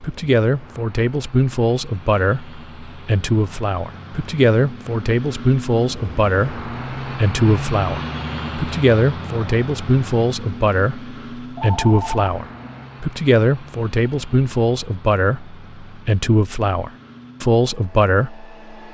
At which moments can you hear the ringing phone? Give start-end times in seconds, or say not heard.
11.4-12.9.